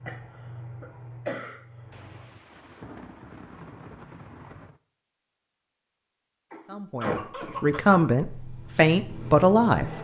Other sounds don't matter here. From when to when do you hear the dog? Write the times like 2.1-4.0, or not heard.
not heard.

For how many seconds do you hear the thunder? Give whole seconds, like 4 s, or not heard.
3 s.